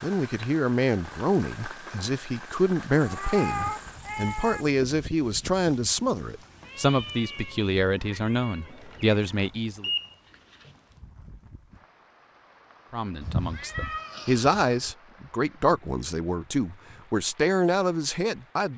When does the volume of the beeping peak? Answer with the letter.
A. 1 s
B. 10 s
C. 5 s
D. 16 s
B.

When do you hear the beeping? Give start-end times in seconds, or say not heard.
8.7-10.8.